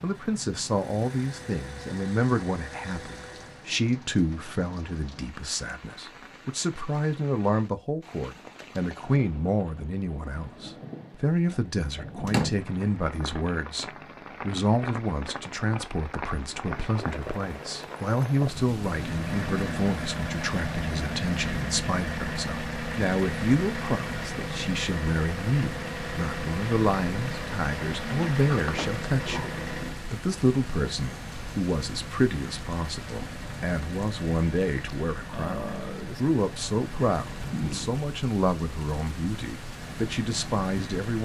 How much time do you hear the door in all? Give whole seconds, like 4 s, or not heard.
2 s.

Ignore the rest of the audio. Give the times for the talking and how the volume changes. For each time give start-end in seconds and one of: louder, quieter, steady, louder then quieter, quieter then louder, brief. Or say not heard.
0.0-41.1 steady.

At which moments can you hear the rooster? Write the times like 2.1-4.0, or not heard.
not heard.